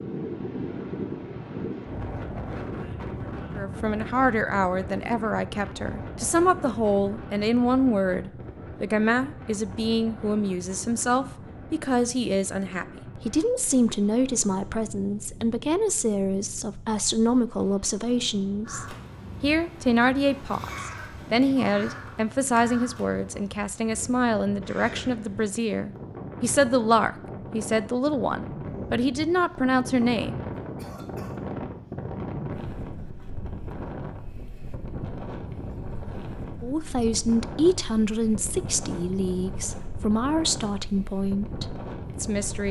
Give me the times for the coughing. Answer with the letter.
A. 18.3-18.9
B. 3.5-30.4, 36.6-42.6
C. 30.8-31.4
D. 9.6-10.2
C.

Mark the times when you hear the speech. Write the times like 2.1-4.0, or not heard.
3.5-30.4, 36.6-42.6.